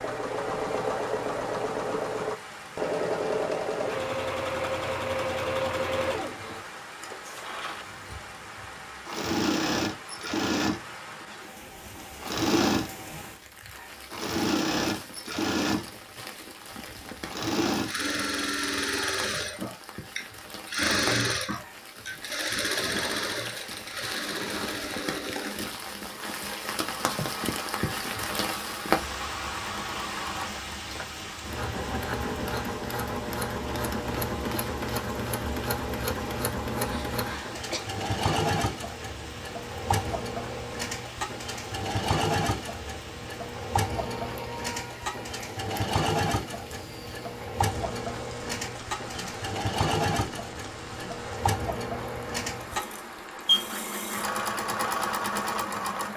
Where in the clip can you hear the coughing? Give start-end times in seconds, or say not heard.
36.9-37.9.